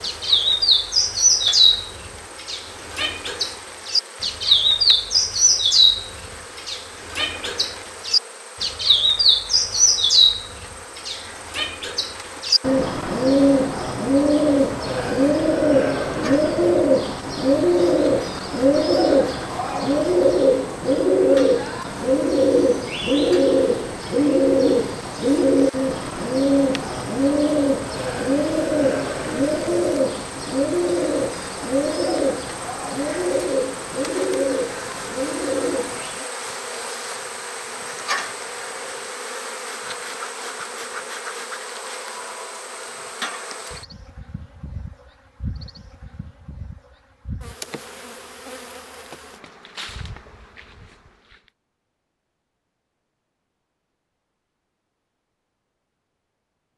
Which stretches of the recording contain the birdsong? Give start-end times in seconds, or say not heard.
0.0-36.2.